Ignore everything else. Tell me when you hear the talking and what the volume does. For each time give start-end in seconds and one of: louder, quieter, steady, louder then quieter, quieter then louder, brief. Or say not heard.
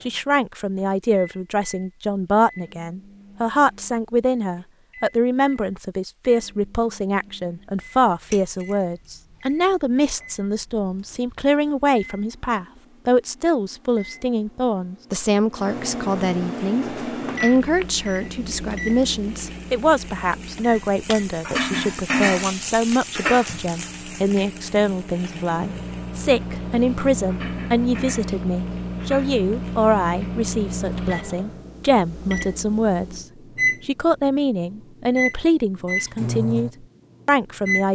0.1-37.9 steady.